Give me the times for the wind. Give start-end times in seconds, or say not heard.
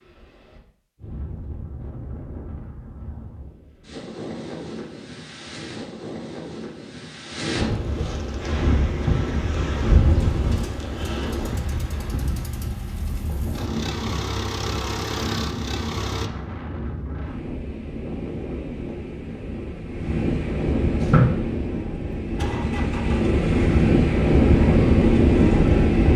0.0-26.1.